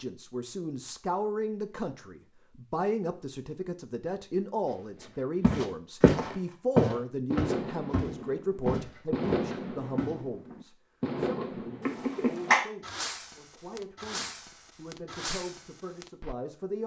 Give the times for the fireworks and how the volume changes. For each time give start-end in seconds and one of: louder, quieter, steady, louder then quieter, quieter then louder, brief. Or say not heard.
7.3-16.4 quieter.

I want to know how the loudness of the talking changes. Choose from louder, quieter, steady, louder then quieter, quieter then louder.
quieter.